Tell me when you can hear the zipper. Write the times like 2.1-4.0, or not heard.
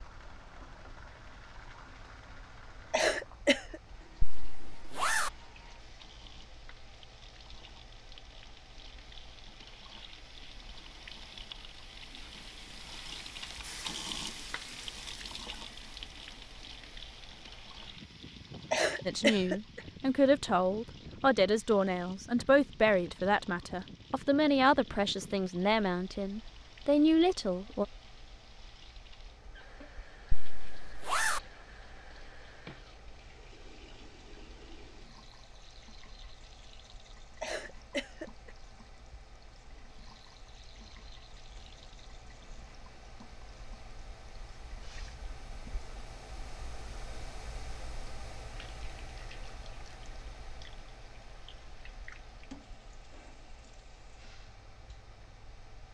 4.2-5.3, 30.3-31.4.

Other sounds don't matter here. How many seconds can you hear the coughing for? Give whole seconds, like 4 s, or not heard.
3 s.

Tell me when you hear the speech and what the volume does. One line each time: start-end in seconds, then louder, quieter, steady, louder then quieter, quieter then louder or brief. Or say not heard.
19.1-27.9 steady.